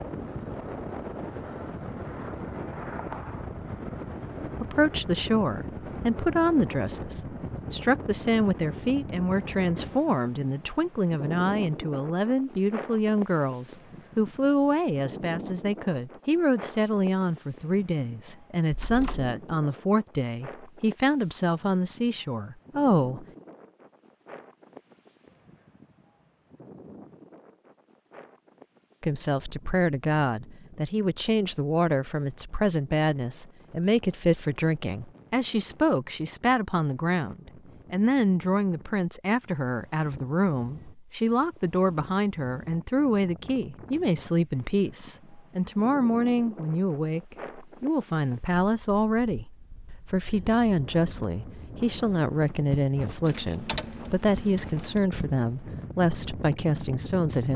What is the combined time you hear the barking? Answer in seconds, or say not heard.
not heard.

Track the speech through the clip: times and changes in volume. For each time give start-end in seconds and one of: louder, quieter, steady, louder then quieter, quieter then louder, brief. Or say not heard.
4.6-23.2 steady
29.0-57.5 steady.